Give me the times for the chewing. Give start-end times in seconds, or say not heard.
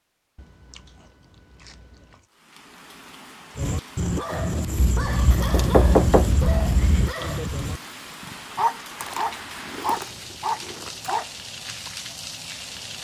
0.3-2.2, 4.8-7.2, 9.0-11.2.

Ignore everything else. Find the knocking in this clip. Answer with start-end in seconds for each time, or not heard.
5.5-6.3.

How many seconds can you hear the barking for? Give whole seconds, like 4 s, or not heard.
8 s.